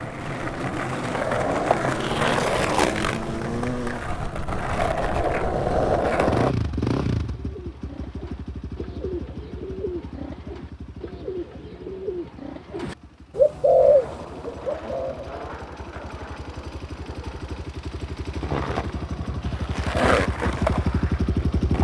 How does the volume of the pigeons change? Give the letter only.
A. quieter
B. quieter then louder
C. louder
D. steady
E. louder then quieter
C.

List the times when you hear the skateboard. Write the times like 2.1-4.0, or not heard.
0.0-6.5, 13.8-21.7.